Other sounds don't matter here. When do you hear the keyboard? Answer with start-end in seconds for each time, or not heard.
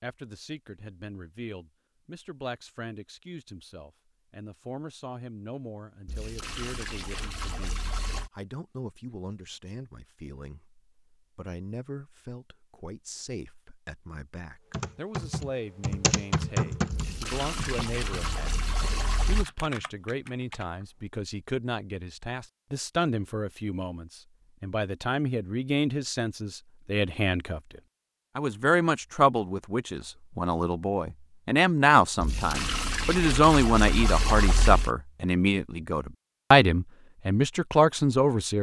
14.7-20.9.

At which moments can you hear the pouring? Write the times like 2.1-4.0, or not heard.
6.0-8.3, 16.9-19.4, 32.2-34.9.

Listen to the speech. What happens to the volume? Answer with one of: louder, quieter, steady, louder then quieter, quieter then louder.
louder.